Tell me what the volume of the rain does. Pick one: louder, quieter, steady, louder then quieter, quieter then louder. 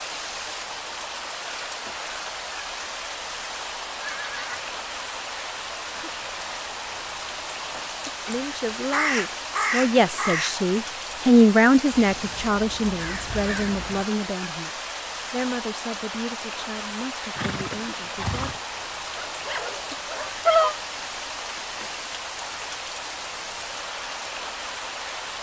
steady.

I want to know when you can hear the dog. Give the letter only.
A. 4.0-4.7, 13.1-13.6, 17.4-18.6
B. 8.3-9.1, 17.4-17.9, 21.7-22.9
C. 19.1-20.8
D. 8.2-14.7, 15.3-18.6
C.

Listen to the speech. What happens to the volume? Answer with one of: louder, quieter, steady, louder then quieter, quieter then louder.
louder then quieter.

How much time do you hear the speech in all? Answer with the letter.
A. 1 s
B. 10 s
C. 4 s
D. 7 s
B.